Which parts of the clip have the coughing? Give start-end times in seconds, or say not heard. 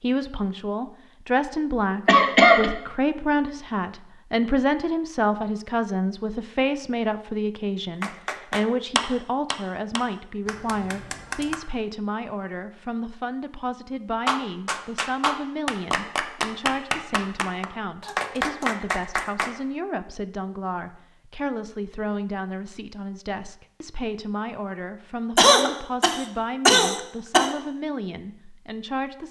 2.0-2.7, 25.4-27.5.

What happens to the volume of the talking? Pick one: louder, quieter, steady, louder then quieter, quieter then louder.
quieter.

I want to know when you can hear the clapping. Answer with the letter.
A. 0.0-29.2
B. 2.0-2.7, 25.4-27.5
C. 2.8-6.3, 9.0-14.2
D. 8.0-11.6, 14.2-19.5
D.